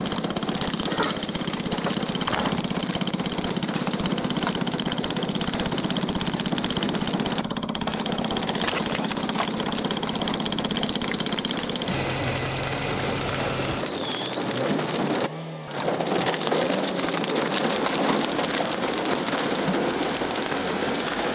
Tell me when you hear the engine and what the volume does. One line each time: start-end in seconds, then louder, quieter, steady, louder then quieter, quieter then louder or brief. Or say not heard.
0.0-21.2 quieter.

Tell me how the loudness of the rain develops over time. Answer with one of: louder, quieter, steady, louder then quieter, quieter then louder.
louder.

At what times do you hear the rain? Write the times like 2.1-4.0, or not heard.
0.0-21.2.